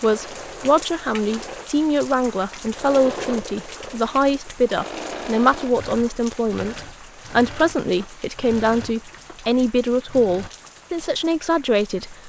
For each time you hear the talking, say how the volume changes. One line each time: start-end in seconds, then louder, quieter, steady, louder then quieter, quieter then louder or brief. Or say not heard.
0.0-12.2 steady.